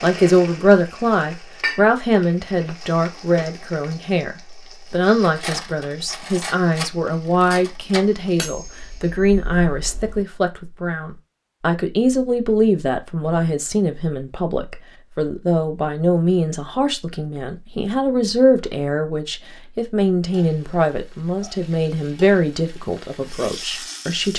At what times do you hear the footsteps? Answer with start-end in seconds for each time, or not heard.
not heard.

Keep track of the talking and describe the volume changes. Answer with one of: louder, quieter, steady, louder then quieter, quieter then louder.
steady.